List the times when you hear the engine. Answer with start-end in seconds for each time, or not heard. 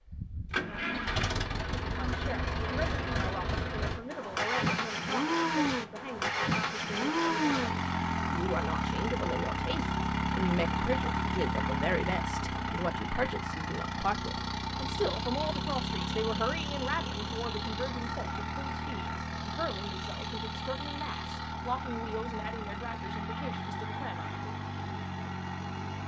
0.0-26.0.